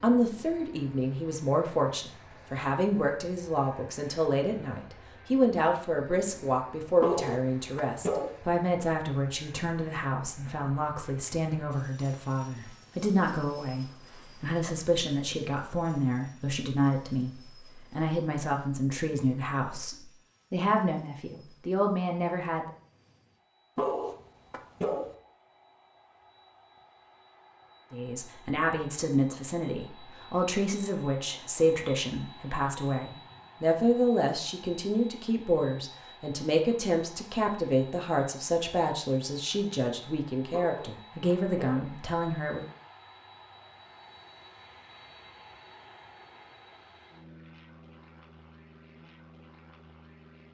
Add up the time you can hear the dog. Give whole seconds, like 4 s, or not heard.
4 s.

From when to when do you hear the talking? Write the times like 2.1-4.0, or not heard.
0.0-22.7, 27.9-42.6.